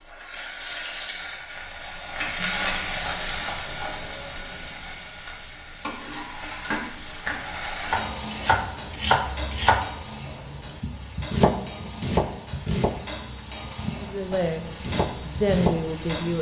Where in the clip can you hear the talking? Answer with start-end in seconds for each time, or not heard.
13.9-16.3.